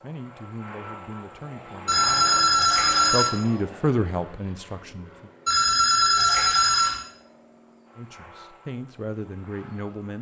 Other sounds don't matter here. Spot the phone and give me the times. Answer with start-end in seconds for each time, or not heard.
1.9-3.4, 5.5-7.0.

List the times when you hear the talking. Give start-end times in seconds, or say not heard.
0.0-5.3, 8.0-10.1.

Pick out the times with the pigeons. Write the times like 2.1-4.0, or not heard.
not heard.